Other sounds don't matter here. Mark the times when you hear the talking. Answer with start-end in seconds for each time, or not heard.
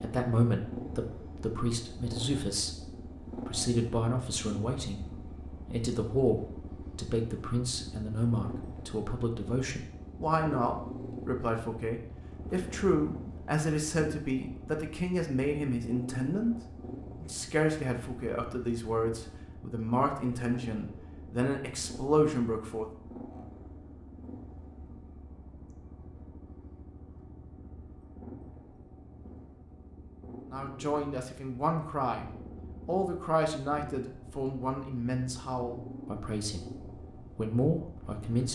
0.0-16.6, 17.2-22.9, 30.5-38.5.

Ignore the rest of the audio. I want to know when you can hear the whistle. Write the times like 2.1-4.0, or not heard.
not heard.